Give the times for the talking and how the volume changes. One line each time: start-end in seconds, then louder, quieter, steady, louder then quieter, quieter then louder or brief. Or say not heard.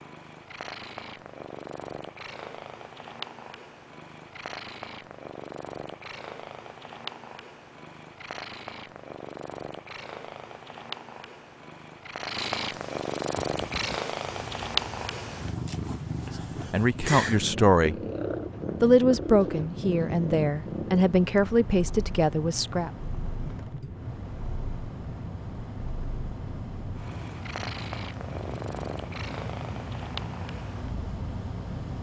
16.7-17.9 brief
18.8-22.9 steady.